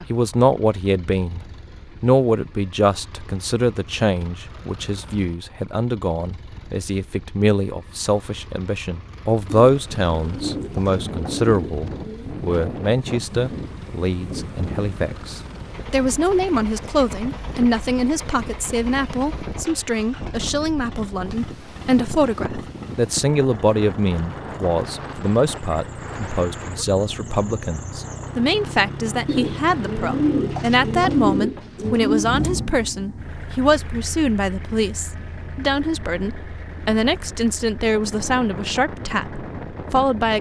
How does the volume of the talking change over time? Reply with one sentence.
The loudness of the talking stays about the same.